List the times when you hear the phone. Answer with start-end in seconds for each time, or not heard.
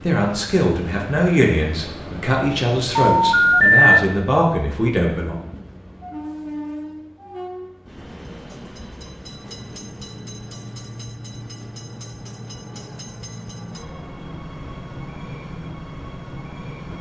3.1-4.0.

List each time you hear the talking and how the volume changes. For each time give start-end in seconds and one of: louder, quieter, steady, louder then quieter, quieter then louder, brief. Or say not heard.
0.0-5.4 steady.